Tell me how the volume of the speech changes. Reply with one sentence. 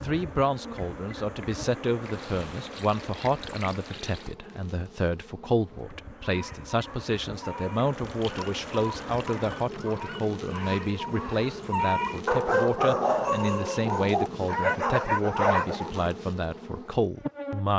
The loudness of the speech stays about the same.